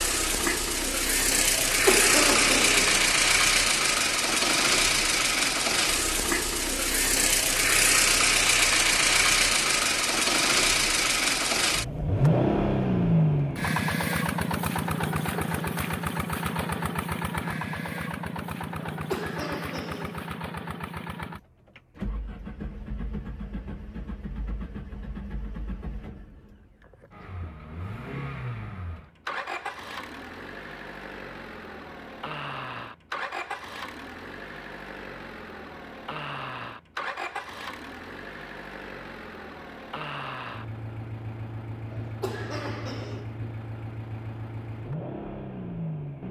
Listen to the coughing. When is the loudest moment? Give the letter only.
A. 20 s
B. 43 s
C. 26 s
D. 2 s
D.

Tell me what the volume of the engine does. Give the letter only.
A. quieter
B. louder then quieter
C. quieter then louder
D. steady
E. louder
A.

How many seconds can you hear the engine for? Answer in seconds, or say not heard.
46 s.